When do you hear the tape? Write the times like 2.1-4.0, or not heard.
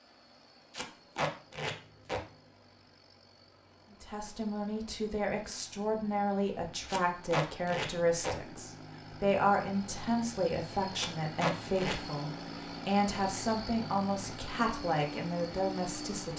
0.7-2.2, 6.8-8.3, 10.9-11.9.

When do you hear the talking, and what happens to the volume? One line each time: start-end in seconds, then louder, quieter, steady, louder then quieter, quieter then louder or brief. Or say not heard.
3.9-16.3 steady.